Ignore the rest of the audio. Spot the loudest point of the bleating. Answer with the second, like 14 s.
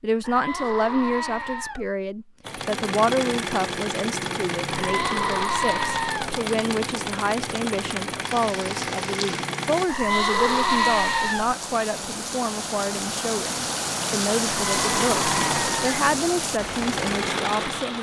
11 s.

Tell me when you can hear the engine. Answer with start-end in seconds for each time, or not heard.
2.4-9.9, 14.8-17.9.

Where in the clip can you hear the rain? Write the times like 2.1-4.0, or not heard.
8.3-17.9.